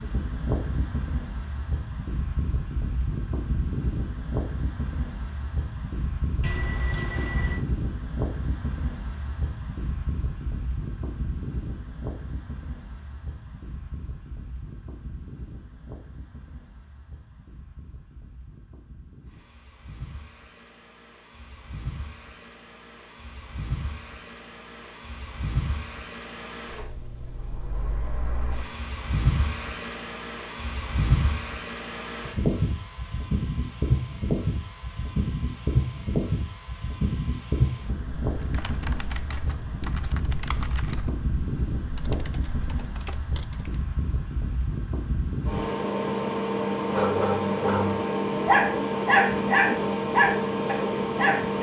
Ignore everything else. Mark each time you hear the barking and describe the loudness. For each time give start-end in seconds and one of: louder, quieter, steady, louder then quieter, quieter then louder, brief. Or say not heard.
46.9-51.5 louder then quieter.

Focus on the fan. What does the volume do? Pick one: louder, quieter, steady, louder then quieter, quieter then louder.
quieter then louder.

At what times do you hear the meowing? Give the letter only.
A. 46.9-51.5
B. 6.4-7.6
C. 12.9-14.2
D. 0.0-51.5
B.